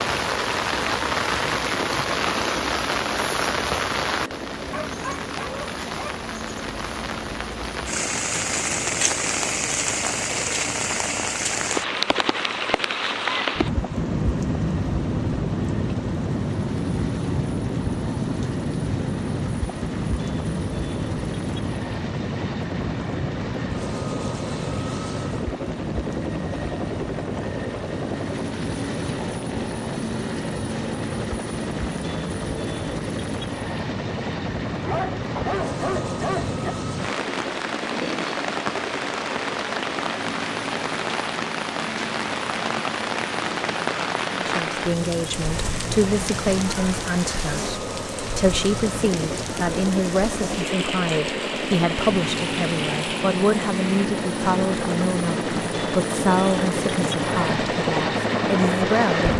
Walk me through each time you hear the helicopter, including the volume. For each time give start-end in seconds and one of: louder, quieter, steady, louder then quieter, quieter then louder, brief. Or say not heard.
0.0-59.3 louder.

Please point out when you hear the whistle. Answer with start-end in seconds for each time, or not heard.
not heard.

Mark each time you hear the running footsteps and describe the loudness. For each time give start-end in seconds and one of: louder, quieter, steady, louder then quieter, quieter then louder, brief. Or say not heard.
not heard.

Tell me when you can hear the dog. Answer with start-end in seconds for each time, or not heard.
4.7-6.2, 34.9-36.8.